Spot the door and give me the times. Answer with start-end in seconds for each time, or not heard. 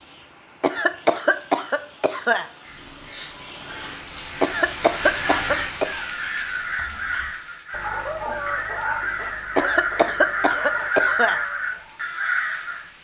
not heard.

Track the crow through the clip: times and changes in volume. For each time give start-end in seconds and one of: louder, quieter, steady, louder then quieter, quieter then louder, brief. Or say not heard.
2.6-12.9 louder.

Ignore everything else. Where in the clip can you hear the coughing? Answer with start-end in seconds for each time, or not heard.
0.6-2.5, 4.4-5.8, 9.6-11.4.